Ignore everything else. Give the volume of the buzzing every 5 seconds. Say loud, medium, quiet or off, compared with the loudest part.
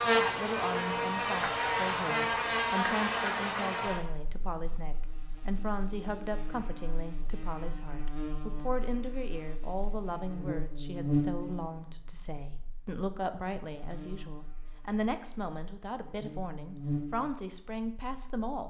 loud, quiet, medium, medium.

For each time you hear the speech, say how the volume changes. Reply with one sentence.
You can hear the speech from 0.0 to 18.6 s, at a steady volume.